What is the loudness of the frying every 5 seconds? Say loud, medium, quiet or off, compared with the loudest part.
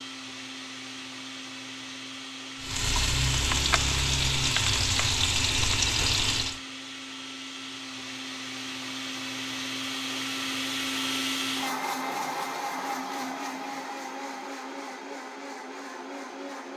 loud, loud, off, off.